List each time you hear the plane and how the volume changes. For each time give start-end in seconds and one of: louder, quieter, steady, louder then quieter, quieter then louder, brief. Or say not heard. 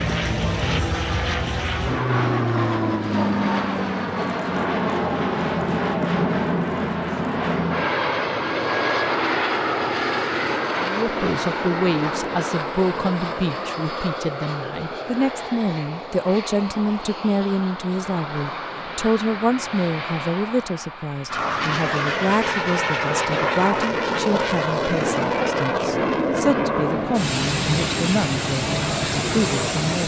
0.0-30.0 quieter then louder.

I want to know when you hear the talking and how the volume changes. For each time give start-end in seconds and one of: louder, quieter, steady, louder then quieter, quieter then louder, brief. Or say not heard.
10.8-30.0 steady.